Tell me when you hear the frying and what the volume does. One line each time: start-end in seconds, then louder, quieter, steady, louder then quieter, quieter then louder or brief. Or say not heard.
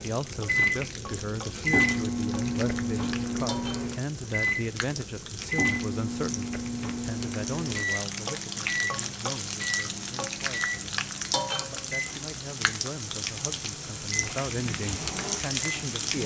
0.0-16.2 louder.